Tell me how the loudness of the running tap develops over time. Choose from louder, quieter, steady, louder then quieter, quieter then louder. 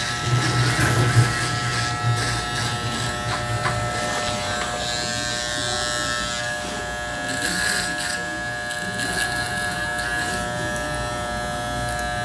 quieter.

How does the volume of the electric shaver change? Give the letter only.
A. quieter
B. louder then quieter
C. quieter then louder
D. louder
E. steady
E.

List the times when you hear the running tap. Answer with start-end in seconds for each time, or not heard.
0.0-5.0.